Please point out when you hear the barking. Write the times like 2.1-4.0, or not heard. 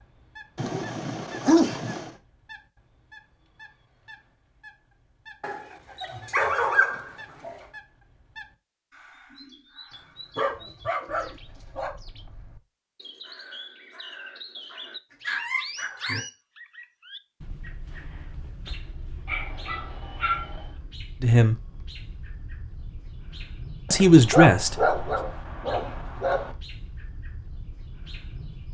0.6-2.1, 5.4-7.5, 10.3-11.9, 15.1-16.2, 19.2-20.7, 23.9-26.5.